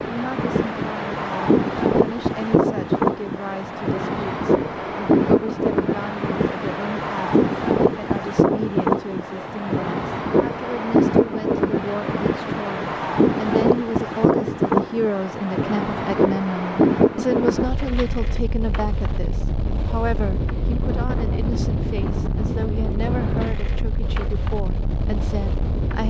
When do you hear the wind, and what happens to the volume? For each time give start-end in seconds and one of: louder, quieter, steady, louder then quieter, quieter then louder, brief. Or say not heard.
0.0-26.0 quieter.